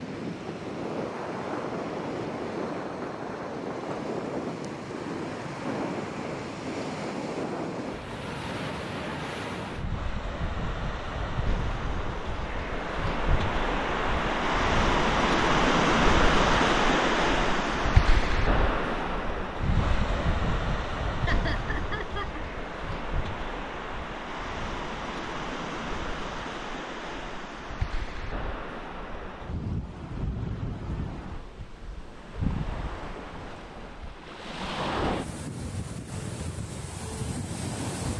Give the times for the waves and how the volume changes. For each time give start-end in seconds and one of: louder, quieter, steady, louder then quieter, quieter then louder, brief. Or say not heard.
0.0-38.1 louder then quieter.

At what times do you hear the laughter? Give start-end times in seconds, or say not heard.
21.2-22.4.